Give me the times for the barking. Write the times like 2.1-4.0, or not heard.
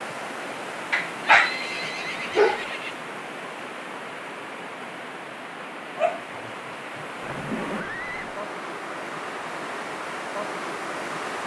0.9-2.6, 6.0-7.0.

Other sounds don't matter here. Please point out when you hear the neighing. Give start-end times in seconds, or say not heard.
1.2-3.0, 7.2-8.4.